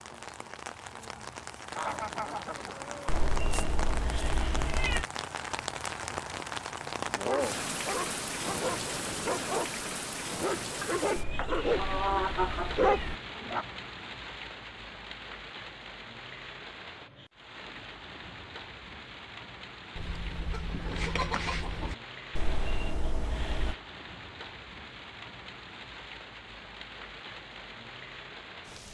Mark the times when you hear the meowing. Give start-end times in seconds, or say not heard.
3.0-5.0, 11.2-13.2, 22.4-23.8.